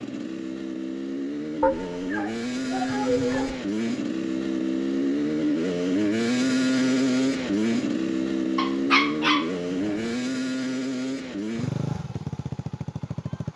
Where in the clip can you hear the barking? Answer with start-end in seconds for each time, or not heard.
1.6-3.6, 8.6-10.2.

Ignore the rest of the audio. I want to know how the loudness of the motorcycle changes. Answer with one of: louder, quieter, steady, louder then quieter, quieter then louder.
louder then quieter.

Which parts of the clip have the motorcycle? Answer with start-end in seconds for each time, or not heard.
0.0-13.5.